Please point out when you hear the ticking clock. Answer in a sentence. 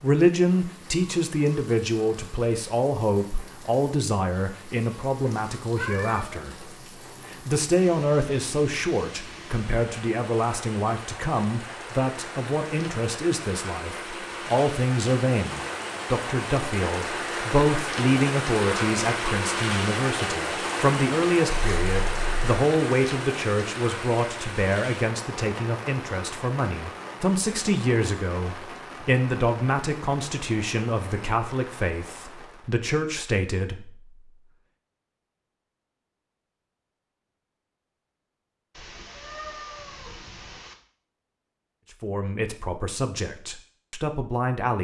The ticking clock can't be heard in this clip.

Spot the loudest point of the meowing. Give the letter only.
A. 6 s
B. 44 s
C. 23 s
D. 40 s
A.